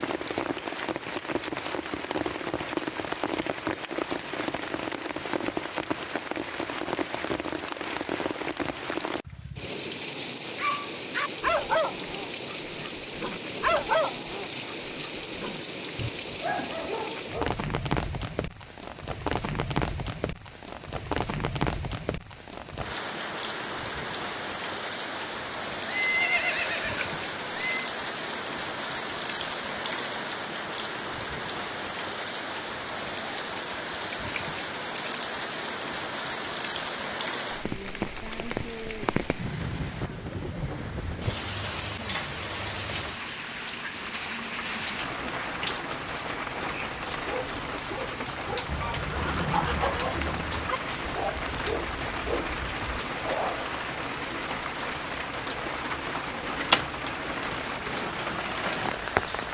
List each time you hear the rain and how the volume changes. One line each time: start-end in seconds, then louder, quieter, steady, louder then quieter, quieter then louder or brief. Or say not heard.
0.0-59.4 steady.